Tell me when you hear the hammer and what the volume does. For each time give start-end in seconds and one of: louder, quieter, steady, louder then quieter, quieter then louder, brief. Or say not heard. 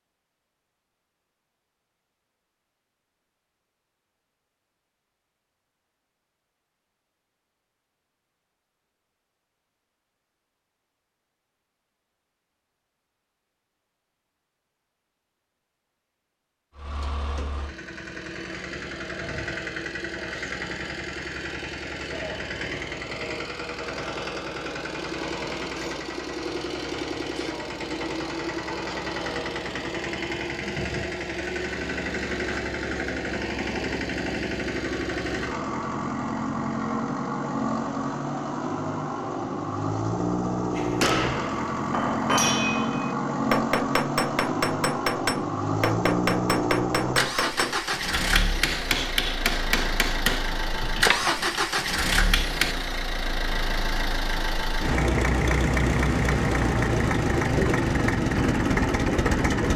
40.8-52.8 steady.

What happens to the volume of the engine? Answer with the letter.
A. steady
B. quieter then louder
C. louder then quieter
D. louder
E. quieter
D.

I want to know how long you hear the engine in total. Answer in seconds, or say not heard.
43 s.